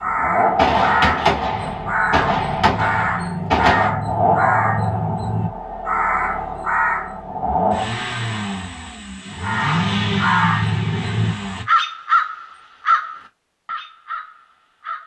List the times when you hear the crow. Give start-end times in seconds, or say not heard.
0.0-7.2, 9.3-15.0.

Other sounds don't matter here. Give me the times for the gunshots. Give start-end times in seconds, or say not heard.
0.6-3.9.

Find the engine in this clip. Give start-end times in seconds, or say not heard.
0.0-11.7.